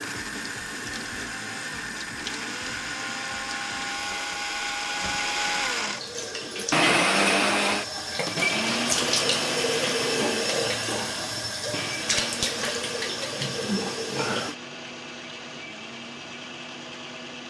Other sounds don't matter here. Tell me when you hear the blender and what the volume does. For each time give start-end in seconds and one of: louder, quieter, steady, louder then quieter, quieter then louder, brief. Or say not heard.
0.0-17.4 louder then quieter.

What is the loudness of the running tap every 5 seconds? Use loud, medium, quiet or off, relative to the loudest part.
medium, loud, loud, off.